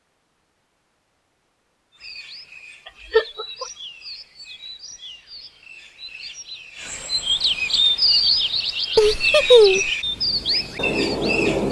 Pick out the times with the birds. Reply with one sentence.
The birds can be heard from 1.9 to 11.6 s.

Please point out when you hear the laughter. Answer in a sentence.
You can hear the laughter from 3.1 to 3.6 s and from 8.9 to 9.9 s.